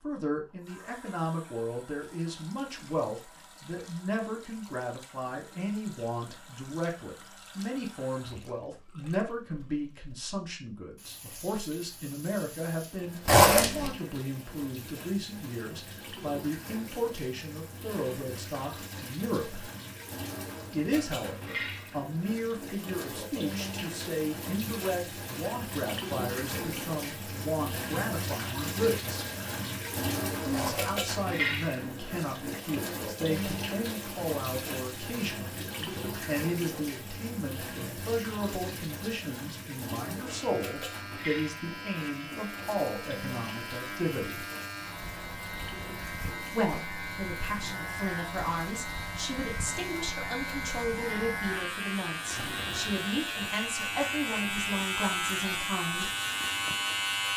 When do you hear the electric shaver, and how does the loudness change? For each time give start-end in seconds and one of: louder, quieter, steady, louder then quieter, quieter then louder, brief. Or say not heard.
40.2-57.3 louder.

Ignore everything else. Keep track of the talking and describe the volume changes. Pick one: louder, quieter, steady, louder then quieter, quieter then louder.
steady.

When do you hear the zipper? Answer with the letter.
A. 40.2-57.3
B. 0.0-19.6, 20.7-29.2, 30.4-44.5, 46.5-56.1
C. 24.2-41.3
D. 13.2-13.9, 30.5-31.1
D.